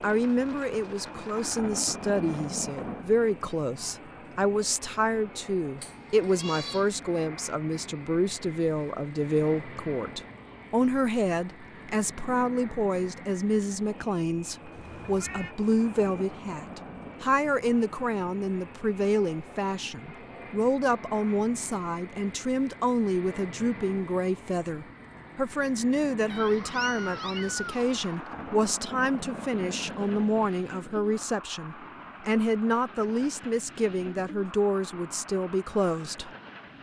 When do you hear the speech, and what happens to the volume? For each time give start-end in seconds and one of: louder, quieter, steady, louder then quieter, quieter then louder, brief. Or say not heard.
0.0-36.3 steady.